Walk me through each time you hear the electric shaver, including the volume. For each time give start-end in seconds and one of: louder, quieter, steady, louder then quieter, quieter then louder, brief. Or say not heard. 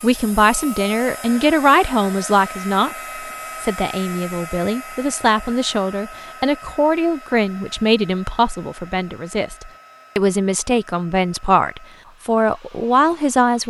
not heard.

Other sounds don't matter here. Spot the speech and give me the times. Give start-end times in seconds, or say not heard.
0.0-3.0, 3.6-13.6.